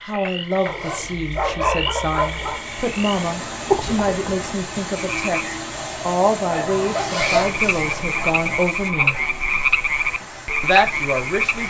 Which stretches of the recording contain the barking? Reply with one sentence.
You can hear the barking from 0.7 to 2.6 s and from 6.5 to 9.2 s.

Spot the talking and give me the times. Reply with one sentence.
You can hear the talking from 0.0 to 9.2 s and from 10.6 to 11.6 s.